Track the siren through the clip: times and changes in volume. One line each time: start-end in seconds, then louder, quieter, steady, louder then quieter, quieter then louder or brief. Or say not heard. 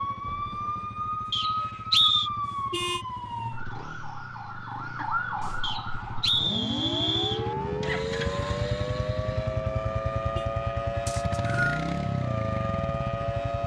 0.0-13.6 steady.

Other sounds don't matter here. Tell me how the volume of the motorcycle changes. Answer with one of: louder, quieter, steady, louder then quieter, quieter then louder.
louder.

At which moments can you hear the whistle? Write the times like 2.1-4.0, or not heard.
1.3-2.3, 5.6-7.5, 11.1-11.8.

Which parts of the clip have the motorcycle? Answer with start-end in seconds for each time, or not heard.
0.0-13.6.